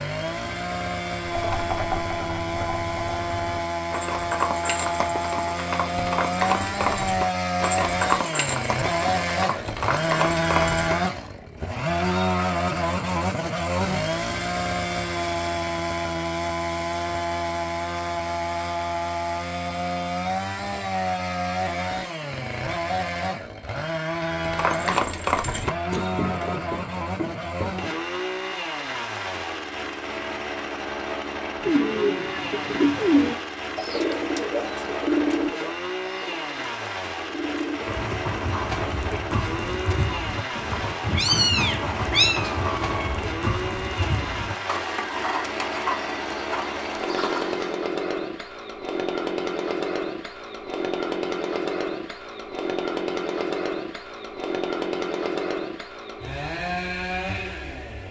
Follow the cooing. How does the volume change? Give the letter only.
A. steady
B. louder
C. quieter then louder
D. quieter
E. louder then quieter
D.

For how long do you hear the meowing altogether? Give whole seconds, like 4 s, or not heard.
2 s.